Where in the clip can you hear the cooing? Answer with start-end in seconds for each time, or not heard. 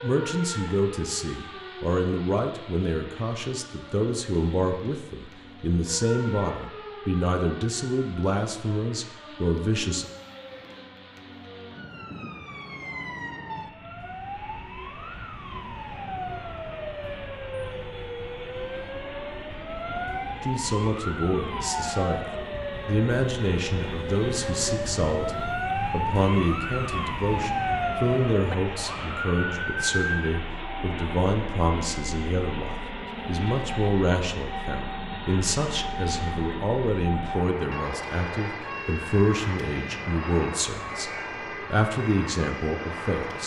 not heard.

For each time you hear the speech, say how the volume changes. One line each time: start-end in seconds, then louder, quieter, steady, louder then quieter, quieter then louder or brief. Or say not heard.
0.0-10.1 steady
20.4-43.4 steady.